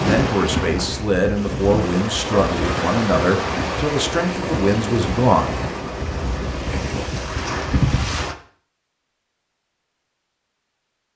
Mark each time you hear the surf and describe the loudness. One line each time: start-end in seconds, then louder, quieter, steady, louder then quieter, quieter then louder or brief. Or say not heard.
0.0-8.3 steady.